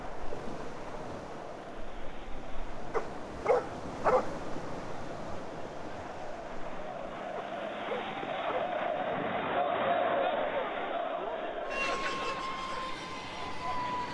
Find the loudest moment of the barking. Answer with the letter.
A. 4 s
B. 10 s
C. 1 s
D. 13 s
A.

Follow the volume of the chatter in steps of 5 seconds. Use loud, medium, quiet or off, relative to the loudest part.
quiet, loud, loud.